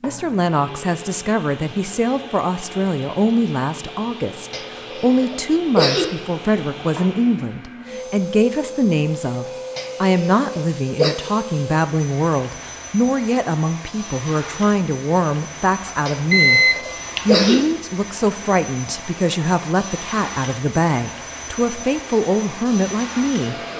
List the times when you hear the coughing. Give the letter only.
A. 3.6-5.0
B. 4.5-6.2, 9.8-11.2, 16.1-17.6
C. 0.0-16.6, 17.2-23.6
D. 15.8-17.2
B.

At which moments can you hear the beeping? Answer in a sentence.
The beeping can be heard from 15.8 to 17.2 s.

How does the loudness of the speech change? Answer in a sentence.
The volume of the speech stays about the same.